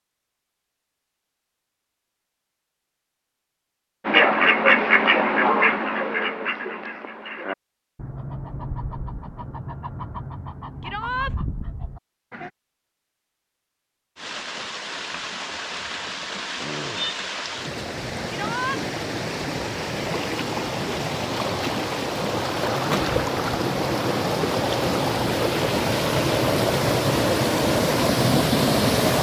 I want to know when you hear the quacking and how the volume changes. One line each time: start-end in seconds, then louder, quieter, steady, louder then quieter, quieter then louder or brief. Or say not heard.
4.0-12.5 quieter.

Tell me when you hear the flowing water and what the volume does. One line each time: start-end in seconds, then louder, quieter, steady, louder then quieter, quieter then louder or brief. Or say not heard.
14.2-29.1 louder.